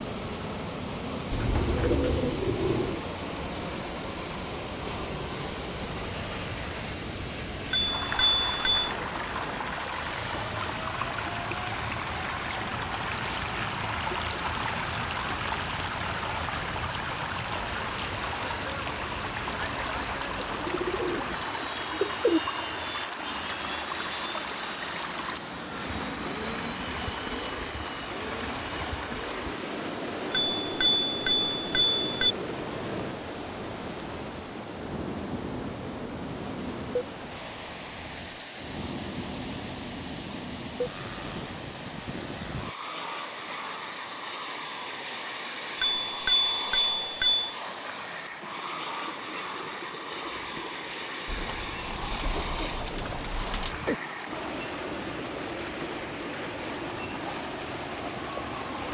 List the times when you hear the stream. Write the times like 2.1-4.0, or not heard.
0.0-58.8.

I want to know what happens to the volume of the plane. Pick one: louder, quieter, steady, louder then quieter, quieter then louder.
steady.